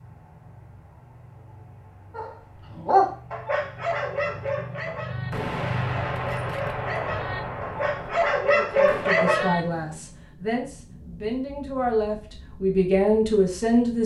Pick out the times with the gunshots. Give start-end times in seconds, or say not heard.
5.3-9.2.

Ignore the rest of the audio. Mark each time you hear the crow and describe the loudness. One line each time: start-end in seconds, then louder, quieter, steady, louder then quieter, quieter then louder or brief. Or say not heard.
not heard.